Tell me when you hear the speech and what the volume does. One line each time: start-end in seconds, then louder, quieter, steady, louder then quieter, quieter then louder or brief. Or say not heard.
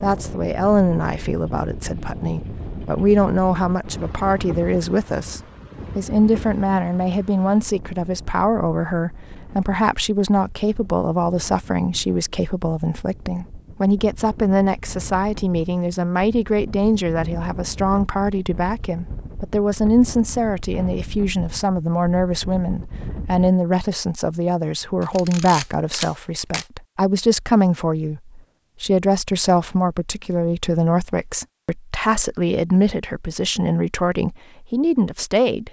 0.0-35.6 steady.